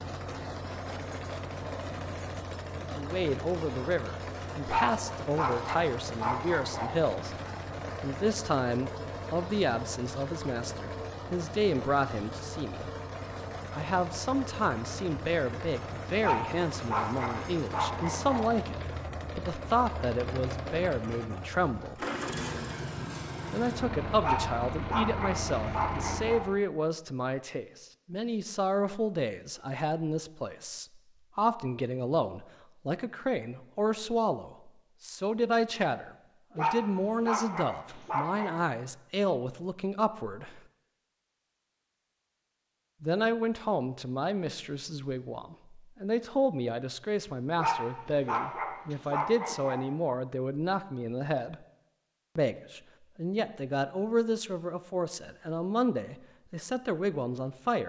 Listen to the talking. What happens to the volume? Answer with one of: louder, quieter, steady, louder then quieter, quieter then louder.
steady.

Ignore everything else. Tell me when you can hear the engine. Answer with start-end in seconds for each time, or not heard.
0.0-26.6.